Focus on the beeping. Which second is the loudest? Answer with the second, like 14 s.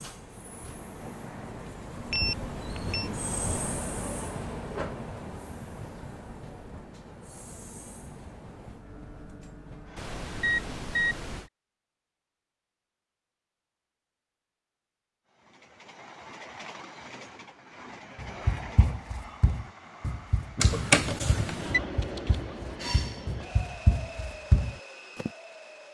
21 s.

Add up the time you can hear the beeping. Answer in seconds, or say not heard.
4 s.